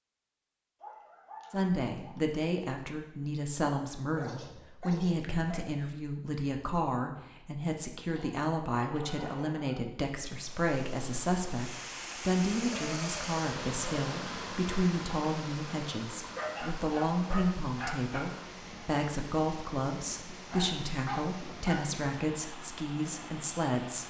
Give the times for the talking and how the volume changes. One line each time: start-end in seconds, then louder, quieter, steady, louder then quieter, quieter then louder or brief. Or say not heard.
1.5-24.0 steady.